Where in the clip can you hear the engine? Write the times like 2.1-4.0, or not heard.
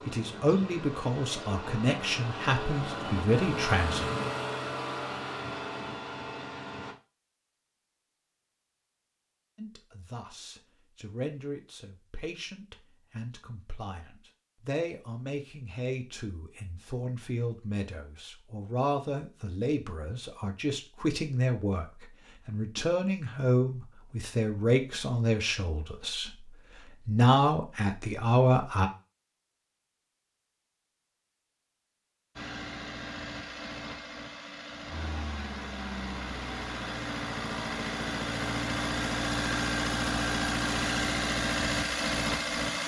0.0-7.0, 32.4-42.8.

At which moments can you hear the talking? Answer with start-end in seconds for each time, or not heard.
0.1-4.1, 9.6-28.9.